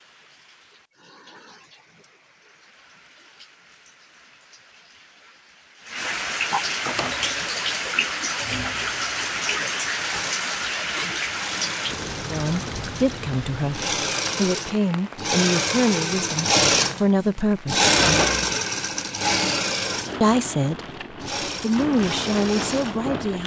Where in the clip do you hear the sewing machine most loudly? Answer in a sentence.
The volume of the sewing machine peaks at 18 seconds.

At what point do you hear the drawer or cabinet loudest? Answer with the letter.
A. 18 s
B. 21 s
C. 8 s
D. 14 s
A.